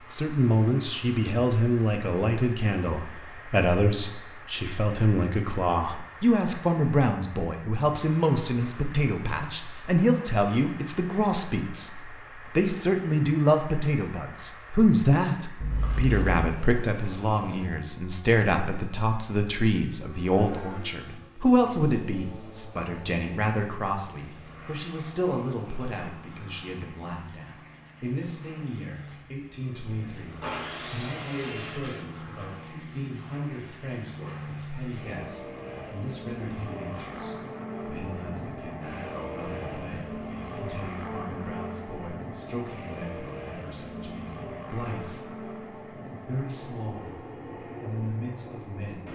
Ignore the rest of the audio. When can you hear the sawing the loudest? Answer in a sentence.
The volume of the sawing peaks at 31 seconds.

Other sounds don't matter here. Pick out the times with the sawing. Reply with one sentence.
You can hear the sawing from 30.4 to 32.1 s.